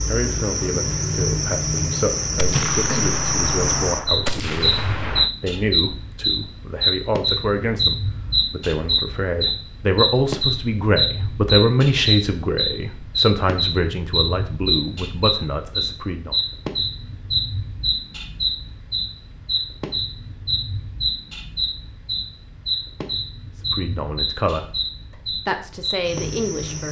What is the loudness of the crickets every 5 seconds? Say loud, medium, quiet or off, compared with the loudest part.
loud, loud, loud, loud, medium, medium.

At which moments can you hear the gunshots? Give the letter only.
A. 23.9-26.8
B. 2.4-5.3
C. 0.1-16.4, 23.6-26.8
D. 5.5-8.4
B.